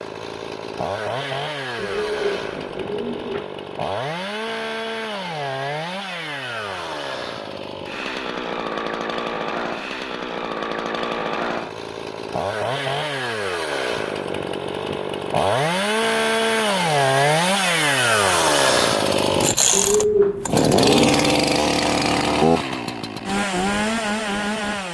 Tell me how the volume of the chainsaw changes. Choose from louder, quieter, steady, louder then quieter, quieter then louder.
louder.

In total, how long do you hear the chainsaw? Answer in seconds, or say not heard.
25 s.